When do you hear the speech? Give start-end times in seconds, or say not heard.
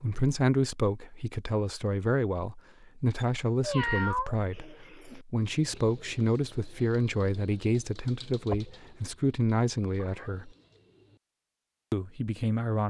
0.0-10.5, 11.9-12.8.